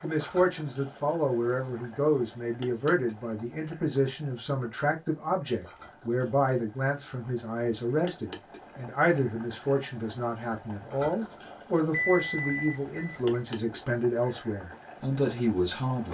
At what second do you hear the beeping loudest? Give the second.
12 s.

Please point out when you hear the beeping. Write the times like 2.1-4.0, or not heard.
11.9-13.4.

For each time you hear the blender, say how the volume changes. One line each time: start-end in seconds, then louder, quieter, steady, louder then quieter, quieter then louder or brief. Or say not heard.
not heard.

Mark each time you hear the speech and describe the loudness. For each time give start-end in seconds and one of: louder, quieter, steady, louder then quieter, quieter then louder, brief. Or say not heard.
0.0-16.0 steady.